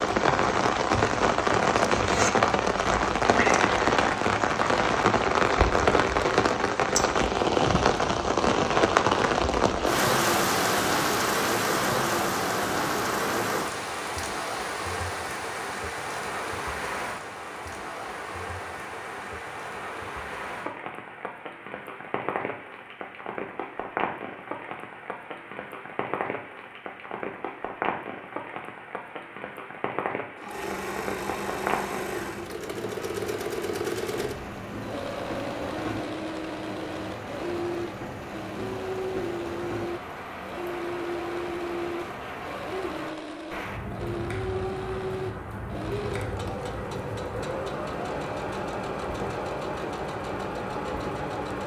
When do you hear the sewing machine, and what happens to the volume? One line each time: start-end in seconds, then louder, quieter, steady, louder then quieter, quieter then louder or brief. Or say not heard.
30.4-51.6 steady.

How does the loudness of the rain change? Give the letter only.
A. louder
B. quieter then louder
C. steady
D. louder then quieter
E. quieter
E.